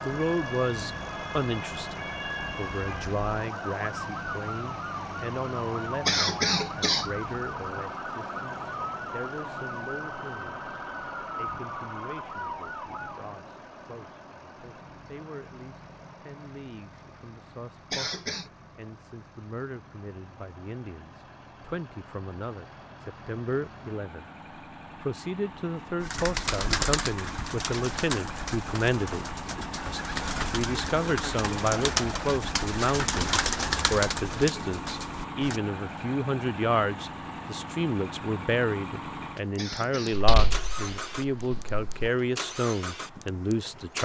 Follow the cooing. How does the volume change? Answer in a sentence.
The loudness of the cooing goes down, then up.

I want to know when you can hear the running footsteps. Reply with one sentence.
The running footsteps can't be heard in this clip.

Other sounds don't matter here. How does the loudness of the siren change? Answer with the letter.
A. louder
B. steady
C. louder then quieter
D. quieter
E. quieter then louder
B.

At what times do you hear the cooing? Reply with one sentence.
You can hear the cooing from 26.0 to 35.6 s.